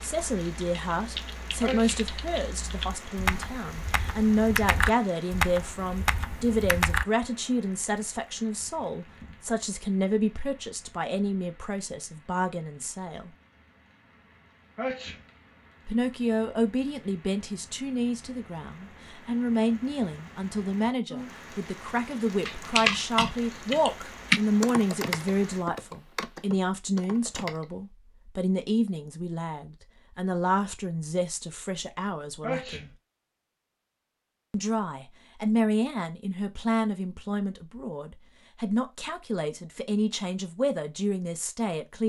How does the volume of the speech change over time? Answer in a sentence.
The loudness of the speech stays about the same.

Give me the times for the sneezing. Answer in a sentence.
You can hear the sneezing from 1.6 to 2.0 s, from 14.8 to 15.2 s and from 32.4 to 32.9 s.